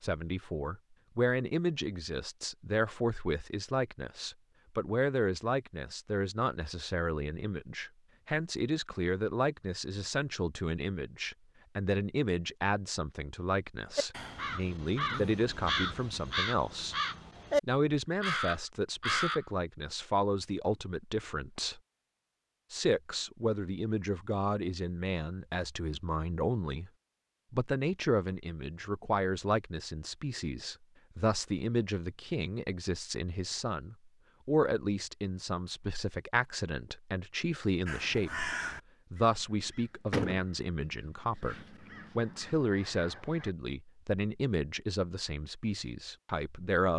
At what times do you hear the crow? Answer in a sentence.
The crow can be heard from 13.9 to 17.6 s, from 18.2 to 19.4 s and from 37.9 to 43.5 s.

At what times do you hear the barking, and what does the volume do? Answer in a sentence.
You can't hear the barking here.